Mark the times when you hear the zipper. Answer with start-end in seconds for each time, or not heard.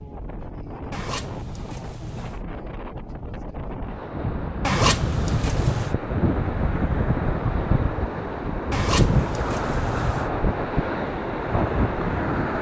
0.9-2.4, 4.6-6.0, 8.7-10.3.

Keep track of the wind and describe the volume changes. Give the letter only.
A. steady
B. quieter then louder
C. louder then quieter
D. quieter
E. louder
E.